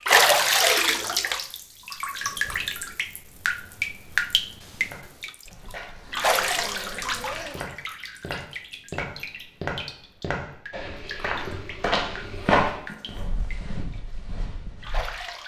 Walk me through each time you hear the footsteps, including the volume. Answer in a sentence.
You can hear the footsteps from 4.8 to 15.1 s, getting louder then quieter.